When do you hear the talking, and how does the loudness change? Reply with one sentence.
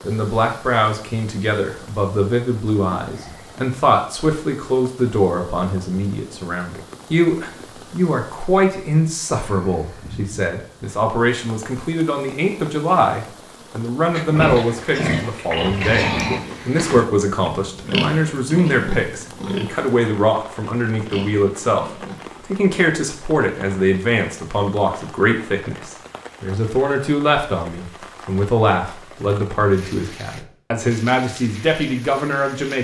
The talking can be heard from 0.0 to 32.8 s, at a steady volume.